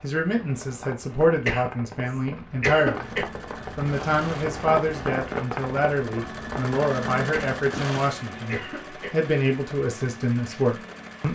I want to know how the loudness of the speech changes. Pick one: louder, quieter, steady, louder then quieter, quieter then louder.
steady.